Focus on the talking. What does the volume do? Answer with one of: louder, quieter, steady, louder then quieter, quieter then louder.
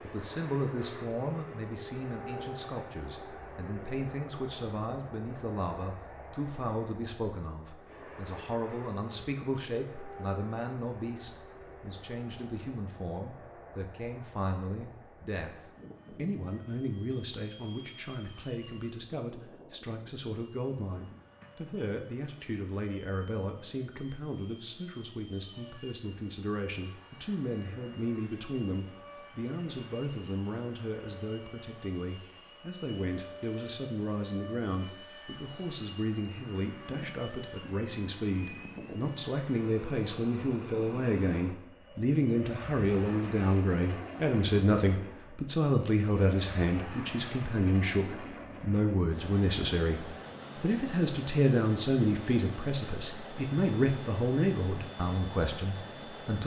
louder.